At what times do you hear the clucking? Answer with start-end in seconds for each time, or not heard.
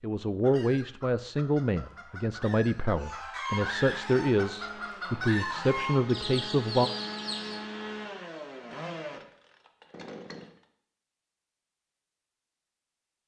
0.4-7.6.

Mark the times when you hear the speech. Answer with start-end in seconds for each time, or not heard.
0.0-6.9.